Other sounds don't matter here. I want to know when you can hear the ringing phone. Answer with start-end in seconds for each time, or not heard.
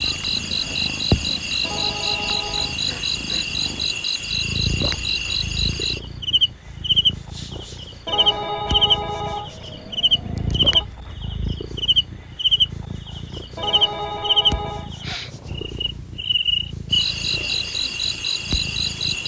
1.6-2.8, 8.1-10.8, 13.6-14.9.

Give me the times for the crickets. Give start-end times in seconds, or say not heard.
0.0-19.2.